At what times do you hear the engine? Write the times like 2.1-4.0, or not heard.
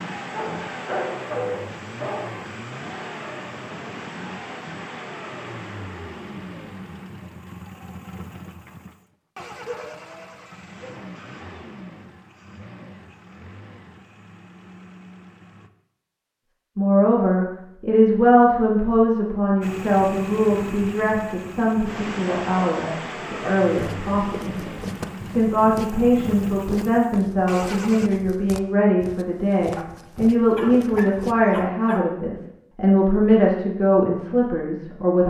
0.0-15.7, 19.6-28.1.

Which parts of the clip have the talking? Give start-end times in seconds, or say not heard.
16.8-24.6, 25.2-35.2.